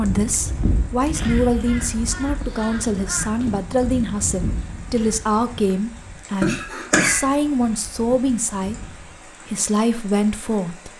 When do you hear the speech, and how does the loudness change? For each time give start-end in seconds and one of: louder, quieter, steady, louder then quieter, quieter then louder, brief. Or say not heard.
0.0-10.9 steady.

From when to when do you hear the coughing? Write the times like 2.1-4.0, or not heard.
6.4-7.2.